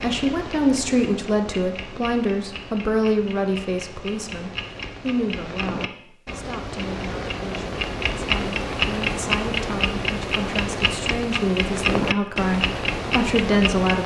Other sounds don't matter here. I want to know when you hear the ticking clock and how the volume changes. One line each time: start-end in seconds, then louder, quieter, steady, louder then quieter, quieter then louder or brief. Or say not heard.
0.0-14.0 louder.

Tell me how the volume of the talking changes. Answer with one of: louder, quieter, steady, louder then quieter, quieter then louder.
quieter then louder.